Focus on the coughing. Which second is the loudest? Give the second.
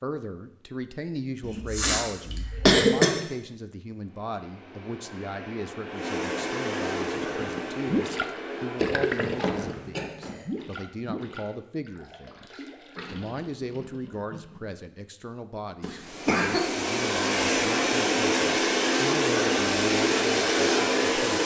3 s.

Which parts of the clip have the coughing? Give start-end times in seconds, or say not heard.
1.4-3.1, 9.3-10.4, 15.8-16.7.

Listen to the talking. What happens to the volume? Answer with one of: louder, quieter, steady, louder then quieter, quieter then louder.
steady.